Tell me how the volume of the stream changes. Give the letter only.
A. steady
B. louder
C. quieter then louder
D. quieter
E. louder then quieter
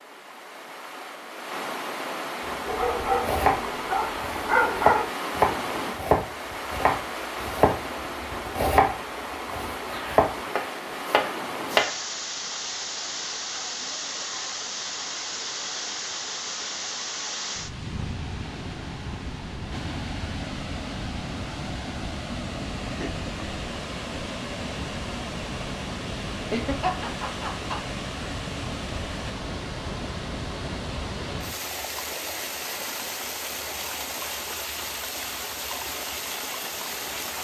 A.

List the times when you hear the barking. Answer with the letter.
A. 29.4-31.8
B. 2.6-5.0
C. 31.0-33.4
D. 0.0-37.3
B.